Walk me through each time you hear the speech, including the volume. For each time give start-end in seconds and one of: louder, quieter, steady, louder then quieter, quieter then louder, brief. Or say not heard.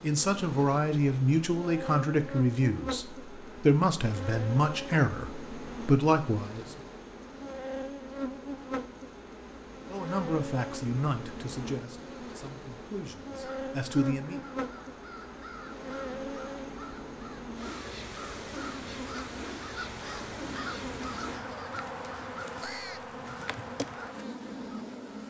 0.0-6.8 steady
9.9-14.4 quieter then louder.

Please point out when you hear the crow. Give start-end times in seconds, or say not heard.
13.4-24.9.